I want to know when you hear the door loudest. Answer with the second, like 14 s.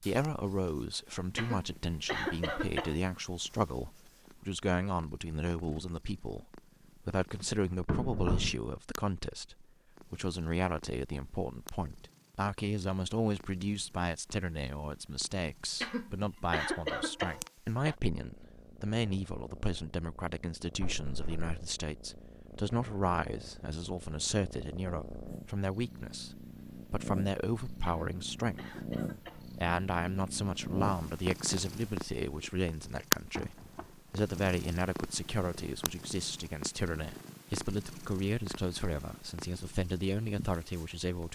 8 s.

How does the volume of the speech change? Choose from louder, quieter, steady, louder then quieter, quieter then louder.
steady.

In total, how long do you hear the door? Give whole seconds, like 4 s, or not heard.
2 s.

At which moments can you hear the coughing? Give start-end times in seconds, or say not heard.
1.4-3.0, 15.8-17.9, 27.9-29.5.